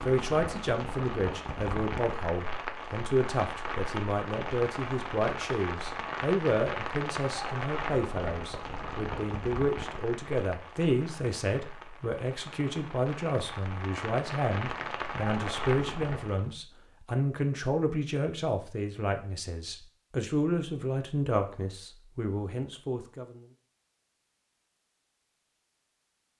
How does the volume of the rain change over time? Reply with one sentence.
The loudness of the rain goes down, then up.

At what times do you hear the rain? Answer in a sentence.
You can hear the rain from 0.0 to 16.6 s.